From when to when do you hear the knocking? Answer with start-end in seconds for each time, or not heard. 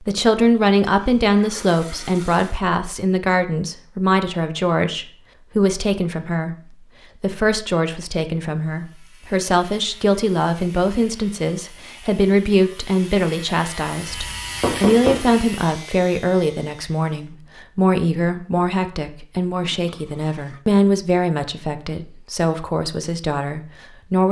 14.1-15.3.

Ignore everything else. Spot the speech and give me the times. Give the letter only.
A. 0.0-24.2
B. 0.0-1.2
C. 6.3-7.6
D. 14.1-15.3
A.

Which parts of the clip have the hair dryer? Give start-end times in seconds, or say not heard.
not heard.